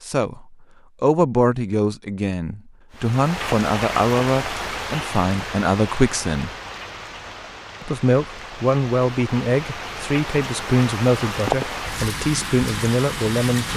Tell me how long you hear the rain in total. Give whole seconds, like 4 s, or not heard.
11 s.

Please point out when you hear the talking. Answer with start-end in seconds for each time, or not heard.
0.0-6.5, 7.8-13.7.